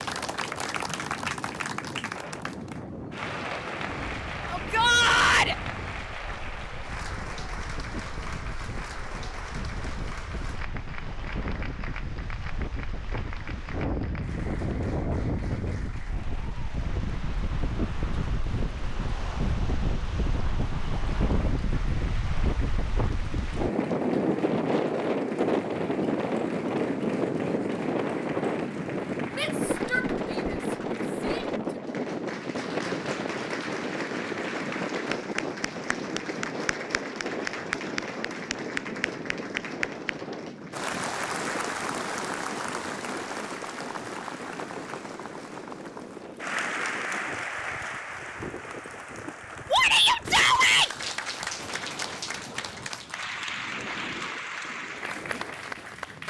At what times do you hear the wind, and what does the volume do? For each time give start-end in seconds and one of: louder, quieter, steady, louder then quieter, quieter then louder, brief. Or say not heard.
0.0-56.2 louder then quieter.